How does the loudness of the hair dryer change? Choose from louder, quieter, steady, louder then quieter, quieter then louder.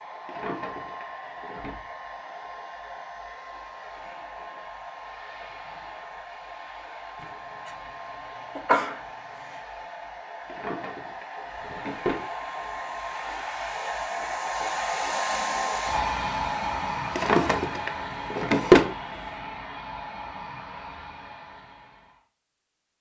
louder then quieter.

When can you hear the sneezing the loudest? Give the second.
9 s.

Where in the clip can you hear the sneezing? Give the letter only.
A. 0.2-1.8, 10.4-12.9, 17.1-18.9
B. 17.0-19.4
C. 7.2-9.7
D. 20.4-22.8
C.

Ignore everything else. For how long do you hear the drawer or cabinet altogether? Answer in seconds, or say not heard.
6 s.